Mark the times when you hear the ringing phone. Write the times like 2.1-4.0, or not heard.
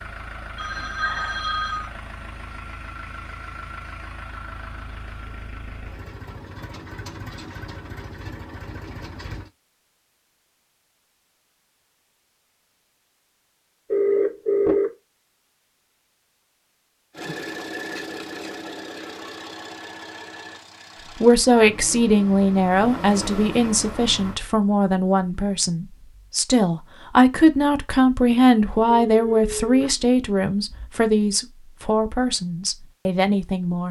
0.6-1.9, 13.9-14.9, 28.9-30.9.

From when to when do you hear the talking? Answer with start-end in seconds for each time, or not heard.
21.1-33.8.